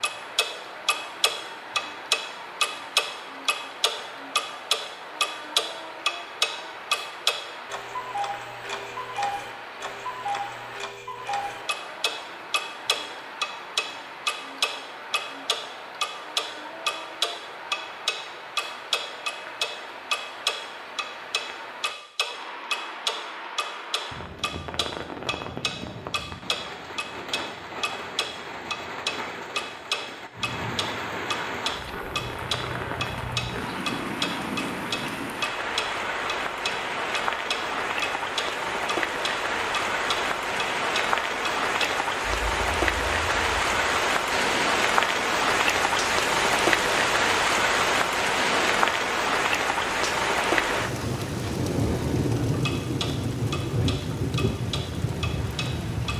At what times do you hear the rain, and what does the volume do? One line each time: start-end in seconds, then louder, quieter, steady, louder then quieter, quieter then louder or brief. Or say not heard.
0.0-56.1 louder.